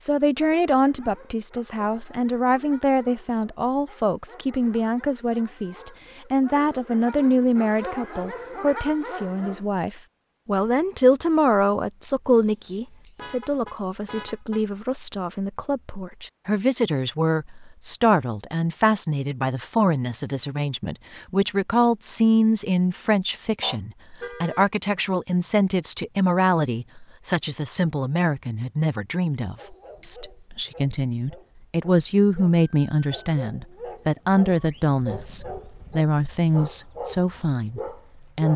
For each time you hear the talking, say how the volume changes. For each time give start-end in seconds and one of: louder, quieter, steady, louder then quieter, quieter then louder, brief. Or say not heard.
0.0-38.5 steady.